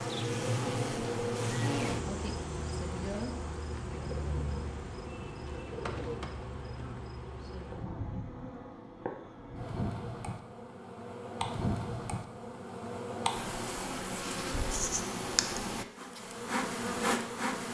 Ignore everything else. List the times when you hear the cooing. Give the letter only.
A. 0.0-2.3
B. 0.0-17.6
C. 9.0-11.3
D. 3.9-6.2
D.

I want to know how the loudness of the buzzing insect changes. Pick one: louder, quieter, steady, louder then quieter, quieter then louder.
quieter then louder.